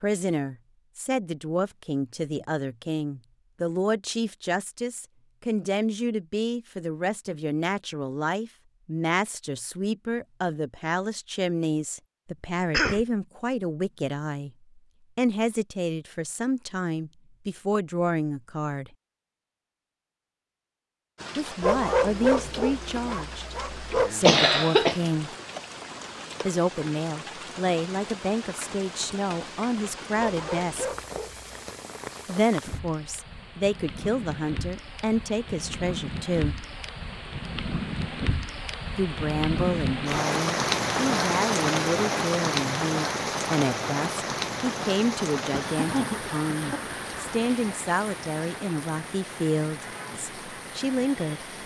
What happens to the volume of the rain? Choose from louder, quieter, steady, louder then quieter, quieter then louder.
louder then quieter.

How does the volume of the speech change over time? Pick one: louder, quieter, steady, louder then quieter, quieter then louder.
steady.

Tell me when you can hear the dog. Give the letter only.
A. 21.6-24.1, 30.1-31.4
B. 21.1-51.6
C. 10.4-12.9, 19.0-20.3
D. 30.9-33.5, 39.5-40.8
A.